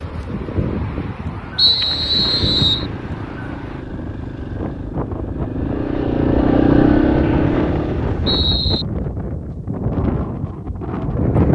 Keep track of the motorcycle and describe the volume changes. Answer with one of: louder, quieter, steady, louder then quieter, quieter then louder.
louder.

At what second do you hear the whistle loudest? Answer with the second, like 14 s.
2 s.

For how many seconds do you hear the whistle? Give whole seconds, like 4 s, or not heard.
3 s.